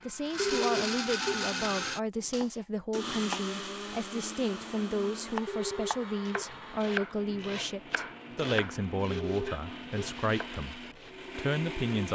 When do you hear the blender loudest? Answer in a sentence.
The volume of the blender peaks at 1 second.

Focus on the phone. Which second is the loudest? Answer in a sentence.
The volume of the phone peaks at 1 second.